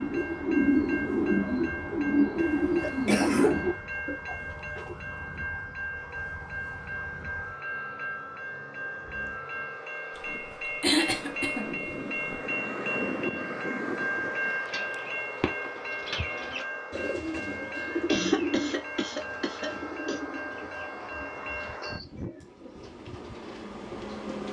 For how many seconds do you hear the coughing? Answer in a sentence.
The coughing can be heard for 4 seconds in total.